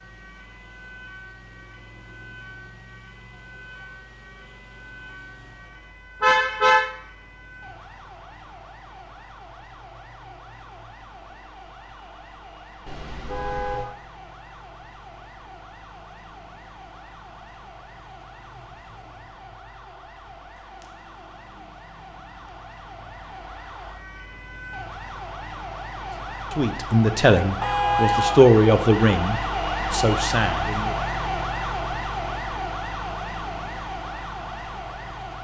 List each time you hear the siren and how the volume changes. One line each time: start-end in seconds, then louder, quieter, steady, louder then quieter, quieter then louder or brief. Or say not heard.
0.0-35.4 louder.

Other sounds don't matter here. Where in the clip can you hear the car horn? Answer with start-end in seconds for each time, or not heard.
6.2-6.9, 12.8-13.9, 27.6-28.4.